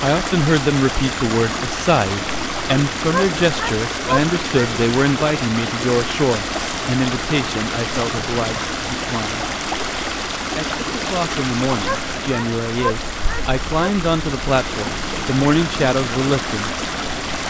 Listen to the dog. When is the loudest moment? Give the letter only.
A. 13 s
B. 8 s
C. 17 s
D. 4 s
D.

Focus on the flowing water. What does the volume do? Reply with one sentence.
The loudness of the flowing water stays about the same.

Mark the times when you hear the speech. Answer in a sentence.
You can hear the speech from 0.0 to 9.4 s and from 10.6 to 16.7 s.